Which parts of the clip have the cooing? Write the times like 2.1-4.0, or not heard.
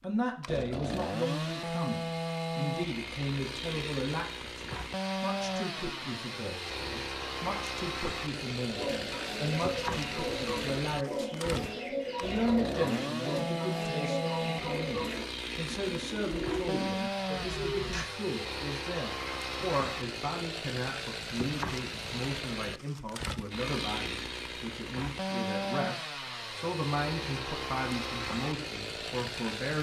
8.8-18.1.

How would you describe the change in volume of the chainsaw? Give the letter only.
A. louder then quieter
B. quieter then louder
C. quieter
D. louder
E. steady
E.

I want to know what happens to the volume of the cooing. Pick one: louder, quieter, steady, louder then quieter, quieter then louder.
steady.